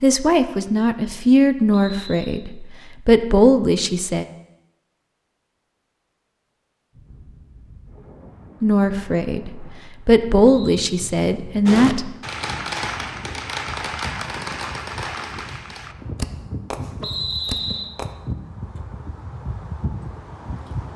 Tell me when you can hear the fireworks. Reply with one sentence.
You can hear the fireworks from 11.7 to 18.1 s.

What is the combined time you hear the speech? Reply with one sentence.
You can hear the speech for 8 seconds altogether.